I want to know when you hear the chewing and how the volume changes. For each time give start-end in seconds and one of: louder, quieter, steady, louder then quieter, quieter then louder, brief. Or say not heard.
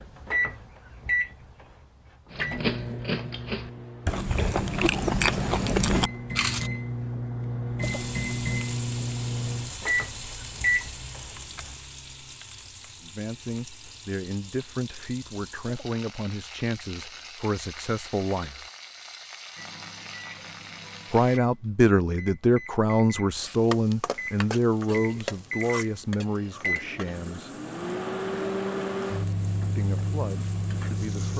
2.3-6.7 louder.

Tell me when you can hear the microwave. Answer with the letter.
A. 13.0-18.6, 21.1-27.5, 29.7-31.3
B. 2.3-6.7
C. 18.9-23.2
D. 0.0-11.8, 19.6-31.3
D.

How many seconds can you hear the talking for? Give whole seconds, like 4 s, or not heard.
14 s.